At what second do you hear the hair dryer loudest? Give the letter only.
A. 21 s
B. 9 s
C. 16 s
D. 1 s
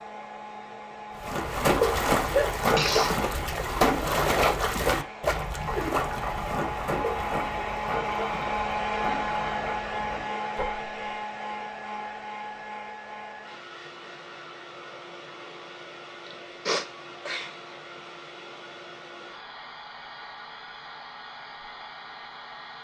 B.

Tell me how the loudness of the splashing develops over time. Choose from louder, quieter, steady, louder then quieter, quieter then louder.
quieter.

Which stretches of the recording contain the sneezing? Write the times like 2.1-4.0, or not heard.
2.4-3.1, 16.2-17.5.